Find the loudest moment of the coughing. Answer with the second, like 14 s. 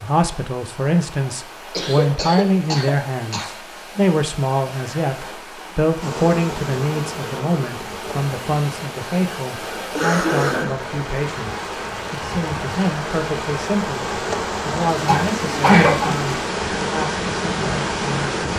16 s.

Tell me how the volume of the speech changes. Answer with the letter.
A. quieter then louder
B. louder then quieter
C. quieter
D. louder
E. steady
C.